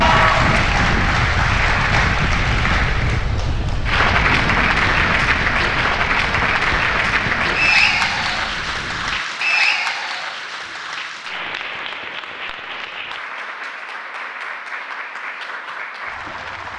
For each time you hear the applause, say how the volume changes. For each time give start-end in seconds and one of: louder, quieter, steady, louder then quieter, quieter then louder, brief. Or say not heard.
0.0-16.7 quieter.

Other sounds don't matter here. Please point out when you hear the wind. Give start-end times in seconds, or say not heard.
0.0-9.2.